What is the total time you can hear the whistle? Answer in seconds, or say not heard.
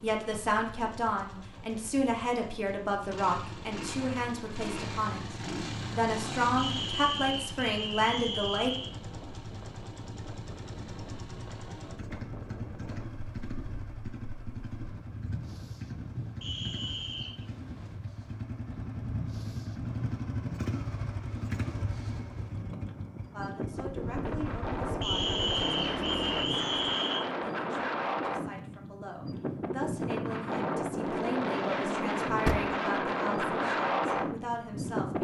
6 s.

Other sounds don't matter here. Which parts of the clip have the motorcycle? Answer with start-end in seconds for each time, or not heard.
0.0-27.0.